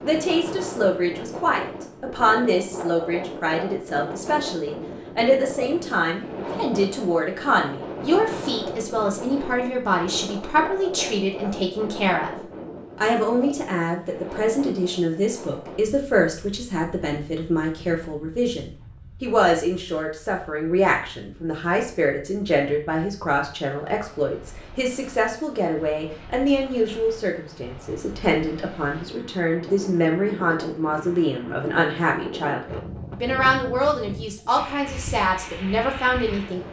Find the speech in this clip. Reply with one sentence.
The speech can be heard from 0.0 to 12.3 s and from 12.9 to 36.6 s.